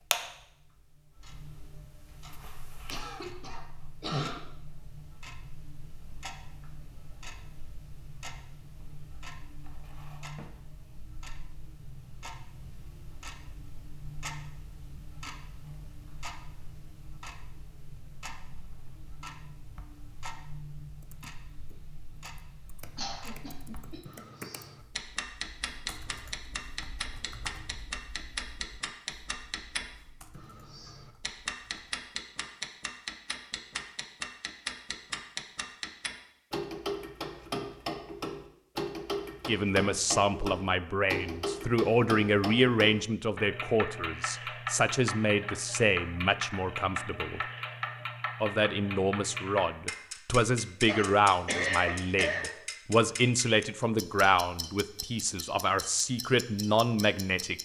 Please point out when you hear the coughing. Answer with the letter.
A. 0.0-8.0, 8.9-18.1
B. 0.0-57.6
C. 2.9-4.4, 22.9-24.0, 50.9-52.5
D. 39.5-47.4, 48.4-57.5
C.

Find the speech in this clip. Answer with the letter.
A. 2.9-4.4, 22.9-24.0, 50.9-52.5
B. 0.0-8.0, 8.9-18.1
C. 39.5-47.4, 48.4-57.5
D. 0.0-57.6
C.